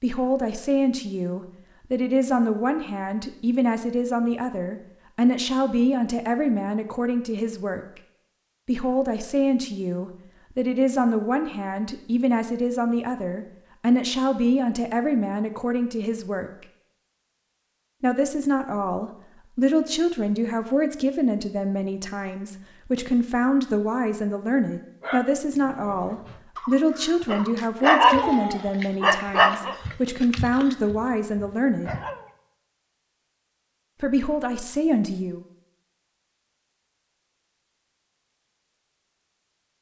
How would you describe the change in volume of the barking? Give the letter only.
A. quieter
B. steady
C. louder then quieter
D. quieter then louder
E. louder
C.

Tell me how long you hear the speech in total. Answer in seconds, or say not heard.
31 s.